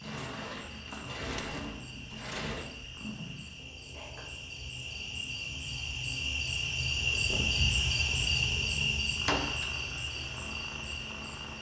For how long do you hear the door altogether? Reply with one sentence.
The door can be heard for 3 seconds in total.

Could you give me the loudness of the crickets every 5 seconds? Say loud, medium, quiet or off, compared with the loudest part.
quiet, loud, medium.